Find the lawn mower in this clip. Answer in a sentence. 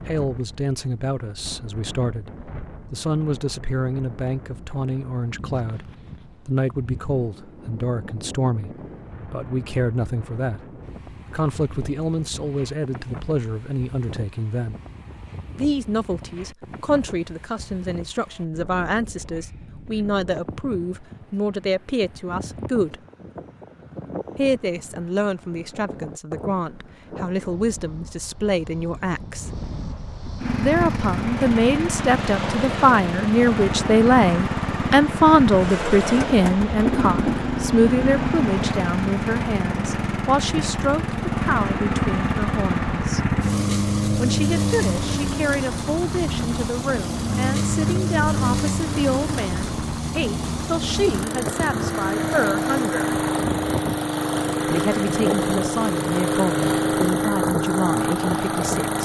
You can hear the lawn mower from 30.4 to 58.9 s.